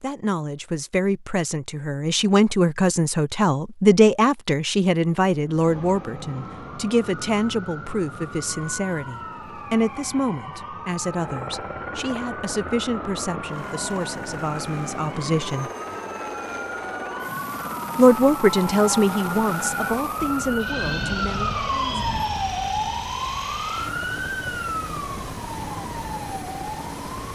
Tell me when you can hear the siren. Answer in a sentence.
The siren can be heard from 5.5 to 27.3 s.